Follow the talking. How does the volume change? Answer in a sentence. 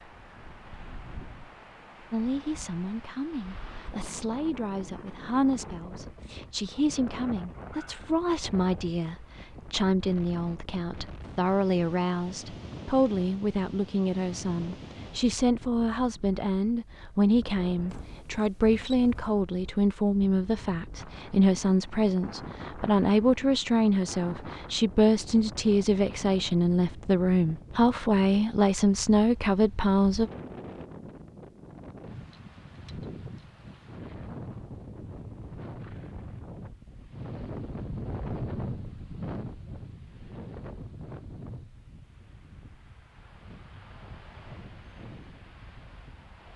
The loudness of the talking goes up.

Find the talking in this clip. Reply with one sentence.
You can hear the talking from 2.1 to 30.3 s.